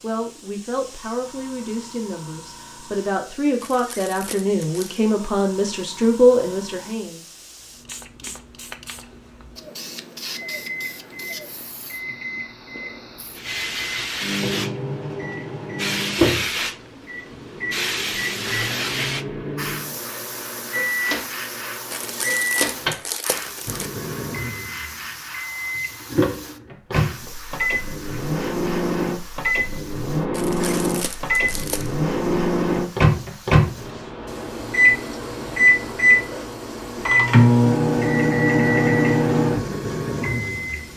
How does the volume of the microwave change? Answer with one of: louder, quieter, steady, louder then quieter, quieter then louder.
louder.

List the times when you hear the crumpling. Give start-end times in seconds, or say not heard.
3.6-5.0, 21.9-23.9, 30.3-31.9.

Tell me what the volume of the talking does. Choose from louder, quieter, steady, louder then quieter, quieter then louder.
louder.